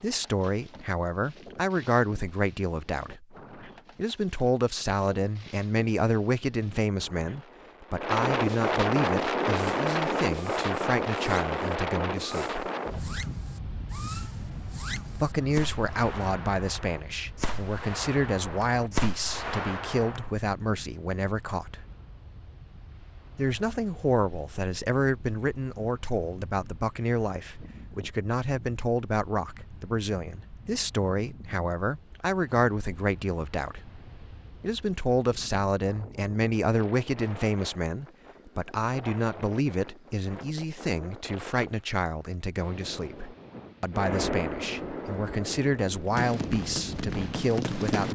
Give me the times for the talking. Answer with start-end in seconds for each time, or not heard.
0.0-3.4, 4.0-12.6, 15.2-21.9, 23.4-34.0, 34.6-48.1.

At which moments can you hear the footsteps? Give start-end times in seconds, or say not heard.
not heard.